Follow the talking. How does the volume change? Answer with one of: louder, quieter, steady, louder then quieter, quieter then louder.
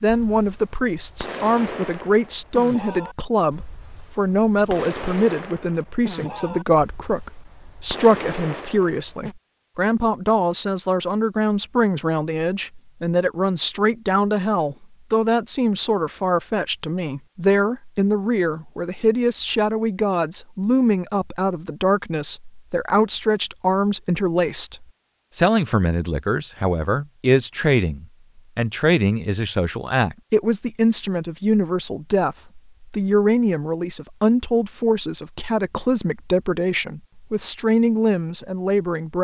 steady.